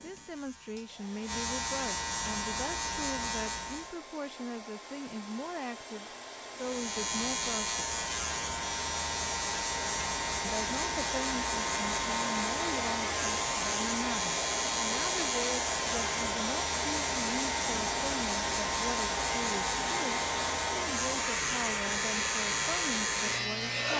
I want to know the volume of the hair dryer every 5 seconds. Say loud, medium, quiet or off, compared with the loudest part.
quiet, medium, loud, loud, loud.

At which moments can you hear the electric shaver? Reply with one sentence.
You can hear the electric shaver from 0.0 to 4.0 s and from 6.5 to 23.9 s.